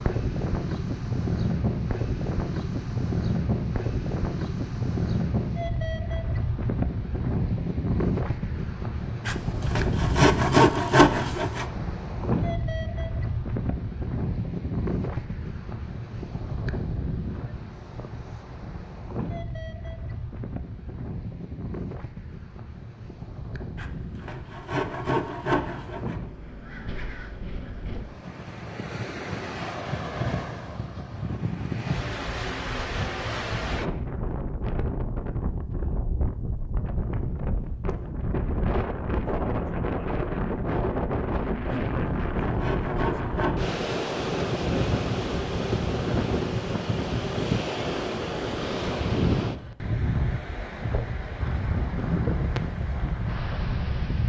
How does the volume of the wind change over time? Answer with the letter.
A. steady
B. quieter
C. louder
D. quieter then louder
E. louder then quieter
D.